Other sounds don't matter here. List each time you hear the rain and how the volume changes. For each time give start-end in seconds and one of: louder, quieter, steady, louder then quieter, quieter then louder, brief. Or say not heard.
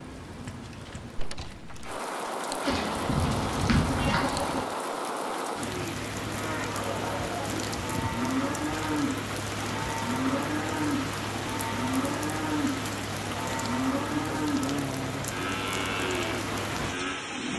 0.0-17.5 steady.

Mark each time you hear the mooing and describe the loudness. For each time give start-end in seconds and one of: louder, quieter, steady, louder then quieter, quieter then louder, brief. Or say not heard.
6.2-17.3 steady.